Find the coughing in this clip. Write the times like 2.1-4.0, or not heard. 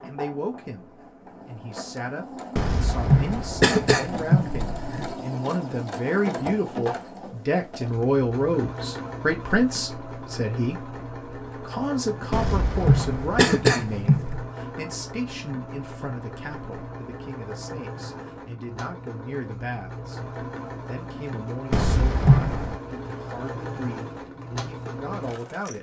2.5-5.1, 12.3-14.4, 21.7-22.8.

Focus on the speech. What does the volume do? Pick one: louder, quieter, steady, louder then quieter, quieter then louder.
louder then quieter.